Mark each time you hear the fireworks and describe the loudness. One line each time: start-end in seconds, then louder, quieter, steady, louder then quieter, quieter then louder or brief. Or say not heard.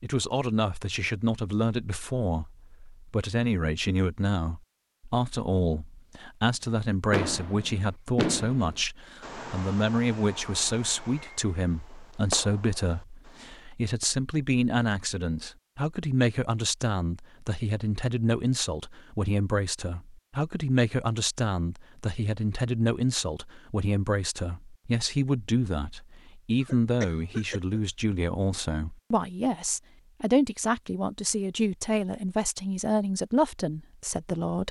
7.1-13.7 quieter then louder.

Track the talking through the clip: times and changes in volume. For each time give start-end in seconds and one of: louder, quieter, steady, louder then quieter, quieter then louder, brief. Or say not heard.
0.0-34.6 steady.